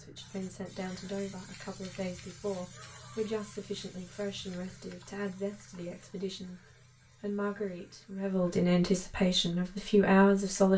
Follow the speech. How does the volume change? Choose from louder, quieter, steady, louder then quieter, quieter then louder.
louder.